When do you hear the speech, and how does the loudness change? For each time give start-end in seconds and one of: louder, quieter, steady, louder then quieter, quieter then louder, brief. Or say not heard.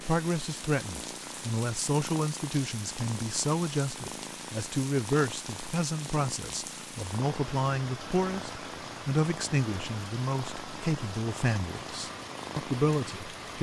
0.0-13.5 steady.